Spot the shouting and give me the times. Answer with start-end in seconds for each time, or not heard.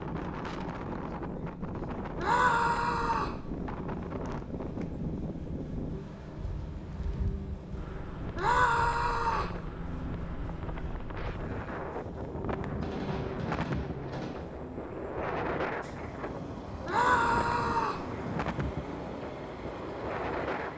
2.1-3.4, 8.3-9.6, 16.9-18.1.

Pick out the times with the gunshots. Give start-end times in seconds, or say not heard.
12.8-14.4.